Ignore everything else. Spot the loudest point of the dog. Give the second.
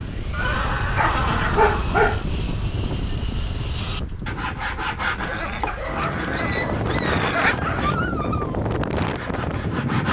2 s.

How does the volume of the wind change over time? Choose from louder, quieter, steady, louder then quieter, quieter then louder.
quieter then louder.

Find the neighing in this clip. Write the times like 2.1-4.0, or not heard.
0.3-2.1, 5.2-7.5.